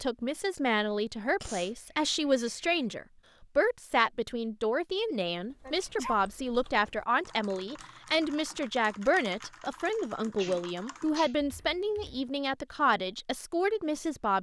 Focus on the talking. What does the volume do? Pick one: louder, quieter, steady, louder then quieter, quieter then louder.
steady.